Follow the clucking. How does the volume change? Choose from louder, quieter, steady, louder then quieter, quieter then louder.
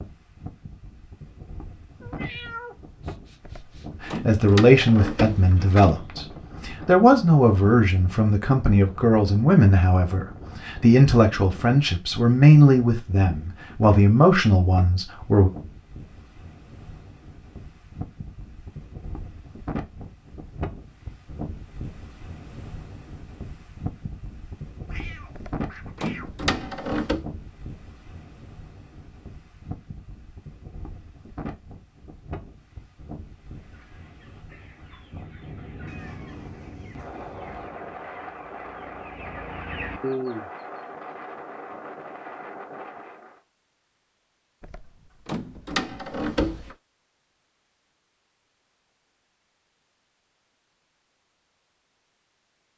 louder.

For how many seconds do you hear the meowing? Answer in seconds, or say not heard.
5 s.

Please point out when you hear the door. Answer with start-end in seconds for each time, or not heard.
3.4-6.0, 25.4-27.2, 44.6-46.8.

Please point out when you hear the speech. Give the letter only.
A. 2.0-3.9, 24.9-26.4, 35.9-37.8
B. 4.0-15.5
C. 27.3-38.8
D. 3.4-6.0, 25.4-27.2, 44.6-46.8
B.